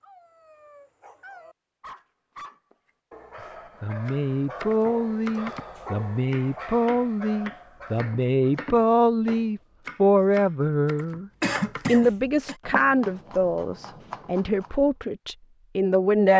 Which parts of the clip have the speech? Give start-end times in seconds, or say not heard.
3.8-16.3.